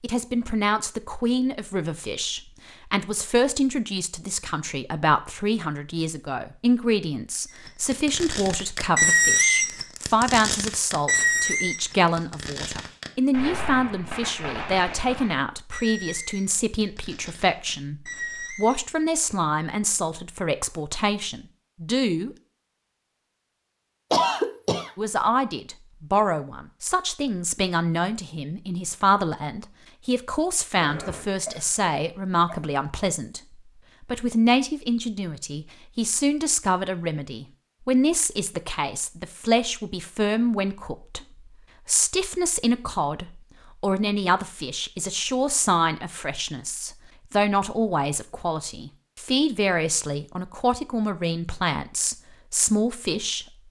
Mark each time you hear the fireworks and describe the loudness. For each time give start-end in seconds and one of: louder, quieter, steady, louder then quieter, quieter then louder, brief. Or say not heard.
7.5-18.9 quieter.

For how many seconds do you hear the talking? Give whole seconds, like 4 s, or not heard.
49 s.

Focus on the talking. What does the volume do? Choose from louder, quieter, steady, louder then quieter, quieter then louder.
steady.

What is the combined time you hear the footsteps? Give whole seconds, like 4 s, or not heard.
not heard.